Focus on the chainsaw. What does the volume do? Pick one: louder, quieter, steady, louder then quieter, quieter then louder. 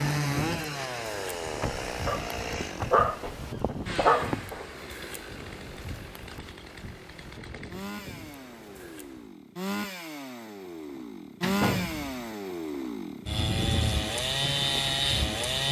quieter then louder.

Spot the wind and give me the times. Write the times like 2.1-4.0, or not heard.
0.0-9.3.